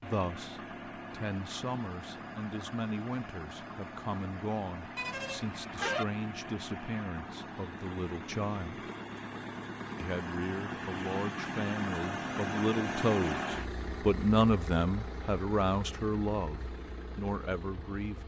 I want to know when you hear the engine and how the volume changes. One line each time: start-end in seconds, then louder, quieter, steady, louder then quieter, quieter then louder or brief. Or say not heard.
0.0-18.2 louder then quieter.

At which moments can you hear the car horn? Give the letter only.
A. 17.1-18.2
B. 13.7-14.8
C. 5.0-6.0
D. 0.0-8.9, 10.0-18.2
C.